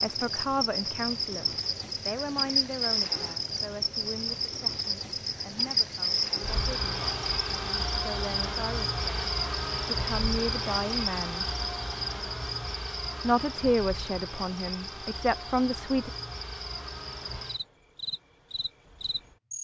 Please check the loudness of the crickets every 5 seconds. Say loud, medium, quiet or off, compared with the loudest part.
loud, loud, loud, medium.